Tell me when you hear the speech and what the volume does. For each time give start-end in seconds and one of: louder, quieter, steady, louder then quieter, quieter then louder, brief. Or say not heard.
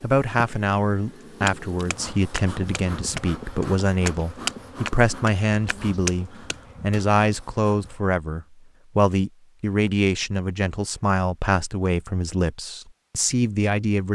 0.0-14.1 steady.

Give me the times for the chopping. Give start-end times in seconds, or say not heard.
1.4-6.5.